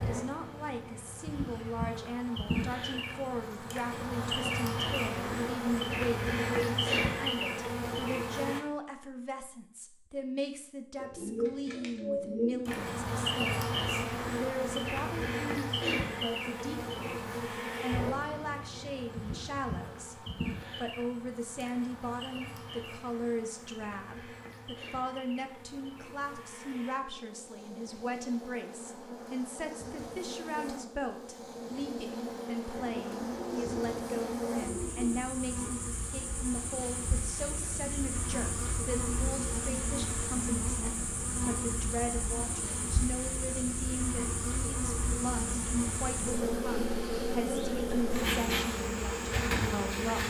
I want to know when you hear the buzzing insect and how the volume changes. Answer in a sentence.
The buzzing insect can be heard from 0.0 to 8.6 s, getting louder; and from 12.7 to 50.2 s, getting quieter then louder.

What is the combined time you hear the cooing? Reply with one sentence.
You can hear the cooing for 4 seconds altogether.